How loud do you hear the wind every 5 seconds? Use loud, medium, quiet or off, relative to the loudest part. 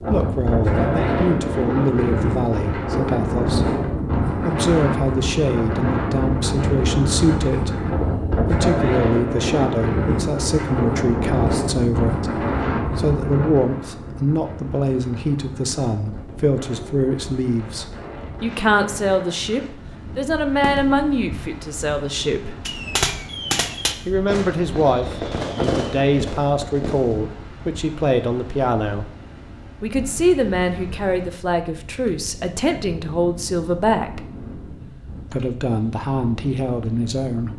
loud, loud, loud, quiet, quiet, quiet, quiet, quiet.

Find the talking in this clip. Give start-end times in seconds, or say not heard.
0.1-3.8, 4.4-22.6, 24.1-29.1, 29.8-34.2, 35.3-37.5.